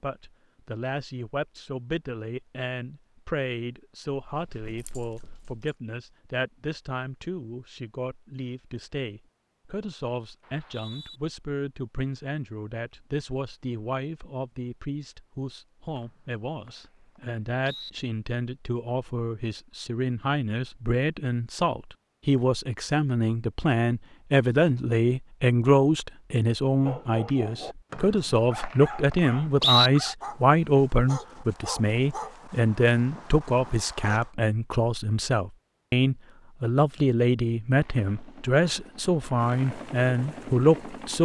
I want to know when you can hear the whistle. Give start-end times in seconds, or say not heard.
10.4-11.2, 15.9-17.9, 27.9-29.9.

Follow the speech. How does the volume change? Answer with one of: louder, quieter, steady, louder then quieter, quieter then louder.
louder.